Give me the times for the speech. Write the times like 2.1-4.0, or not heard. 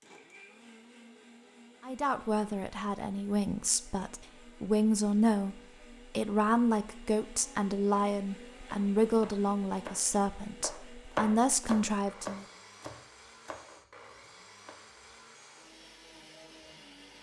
1.8-12.4.